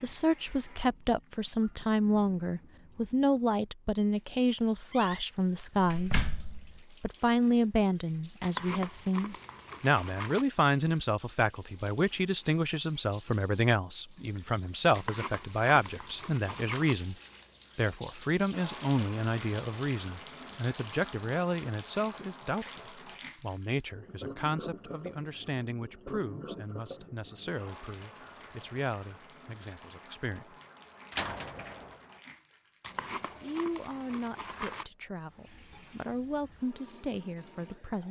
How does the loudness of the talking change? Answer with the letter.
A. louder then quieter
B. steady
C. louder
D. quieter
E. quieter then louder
D.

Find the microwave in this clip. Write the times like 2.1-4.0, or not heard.
not heard.